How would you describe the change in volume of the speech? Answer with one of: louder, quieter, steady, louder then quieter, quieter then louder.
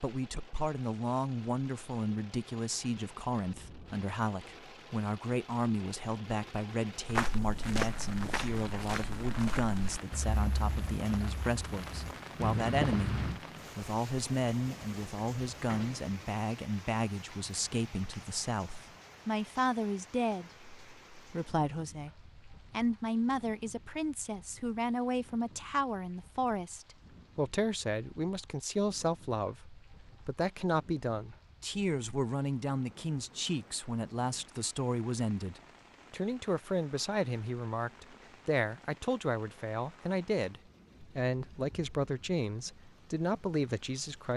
steady.